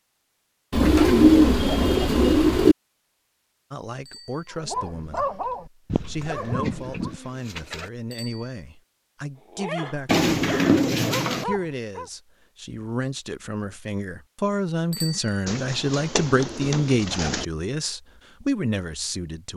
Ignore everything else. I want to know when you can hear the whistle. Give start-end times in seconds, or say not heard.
not heard.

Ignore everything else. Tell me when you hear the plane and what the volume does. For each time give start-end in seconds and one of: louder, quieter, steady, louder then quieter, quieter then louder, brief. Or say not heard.
not heard.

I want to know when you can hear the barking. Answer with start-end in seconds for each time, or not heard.
4.5-7.1, 9.4-12.1.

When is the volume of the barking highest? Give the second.
5 s.